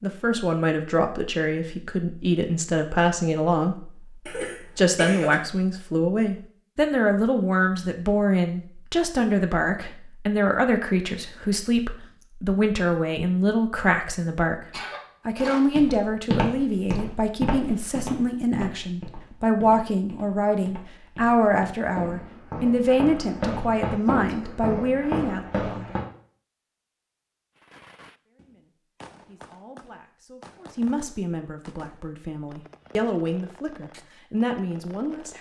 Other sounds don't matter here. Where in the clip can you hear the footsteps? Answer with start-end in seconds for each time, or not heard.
15.3-26.1.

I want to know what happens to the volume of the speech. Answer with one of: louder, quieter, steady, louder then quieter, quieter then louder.
quieter.